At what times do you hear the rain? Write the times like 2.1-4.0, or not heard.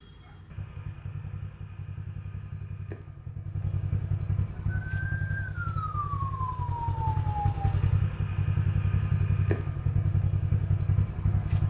not heard.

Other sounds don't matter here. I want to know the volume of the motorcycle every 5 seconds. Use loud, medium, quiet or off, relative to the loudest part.
medium, loud, loud.